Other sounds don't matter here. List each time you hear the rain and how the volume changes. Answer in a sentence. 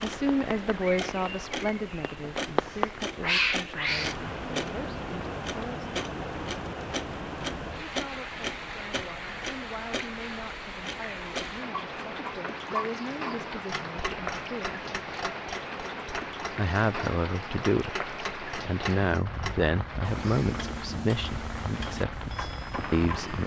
You can hear the rain from 0.0 to 23.4 s, at a steady volume.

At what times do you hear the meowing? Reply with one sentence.
The meowing can be heard from 2.5 to 4.2 s.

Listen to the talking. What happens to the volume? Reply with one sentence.
The loudness of the talking goes down, then up.